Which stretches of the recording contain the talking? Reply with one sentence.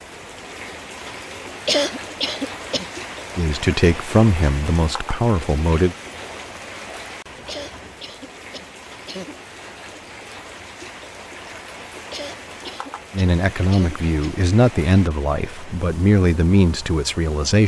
The talking can be heard from 3.4 to 6.0 s and from 13.1 to 17.6 s.